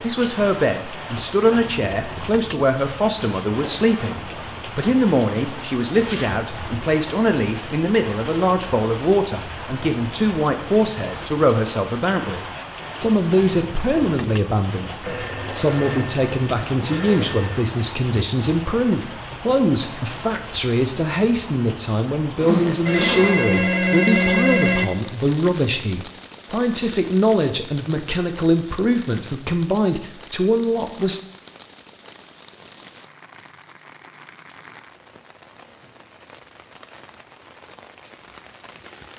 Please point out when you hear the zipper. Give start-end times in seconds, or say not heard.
6.0-6.8, 22.2-23.6.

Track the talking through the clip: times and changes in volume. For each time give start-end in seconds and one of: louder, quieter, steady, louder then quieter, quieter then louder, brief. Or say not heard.
0.0-31.2 steady.